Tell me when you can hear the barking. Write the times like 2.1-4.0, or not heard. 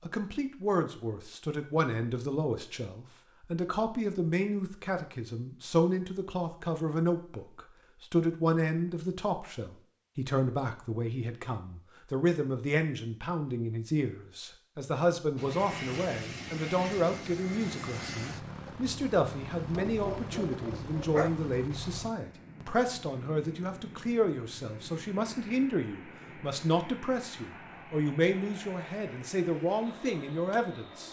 19.7-21.3.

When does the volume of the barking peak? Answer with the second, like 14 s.
21 s.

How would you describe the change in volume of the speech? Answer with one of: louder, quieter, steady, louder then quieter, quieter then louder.
steady.